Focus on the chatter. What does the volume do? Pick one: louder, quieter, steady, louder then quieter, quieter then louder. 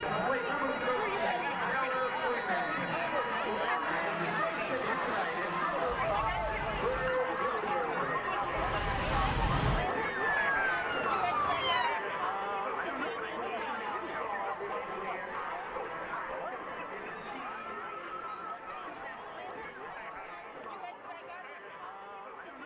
quieter.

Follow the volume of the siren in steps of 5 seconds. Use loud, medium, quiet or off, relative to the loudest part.
medium, medium, loud, off, off.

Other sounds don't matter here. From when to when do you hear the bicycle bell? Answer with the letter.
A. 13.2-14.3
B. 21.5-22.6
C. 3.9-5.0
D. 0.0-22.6
C.